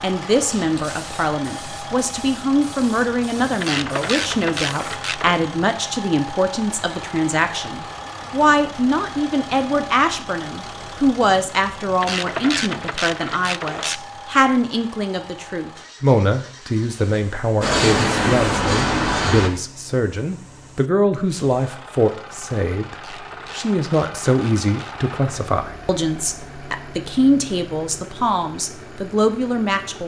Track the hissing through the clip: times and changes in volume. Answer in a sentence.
The hissing can be heard from 0.0 to 5.0 s, getting quieter; and briefly from 17.6 to 19.5 s.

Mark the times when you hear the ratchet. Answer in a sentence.
The ratchet can be heard from 3.6 to 5.3 s, from 12.0 to 14.0 s and from 22.9 to 24.9 s.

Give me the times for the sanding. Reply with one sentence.
The sanding can't be heard in this clip.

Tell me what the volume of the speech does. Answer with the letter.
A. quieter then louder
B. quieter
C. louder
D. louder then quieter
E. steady
E.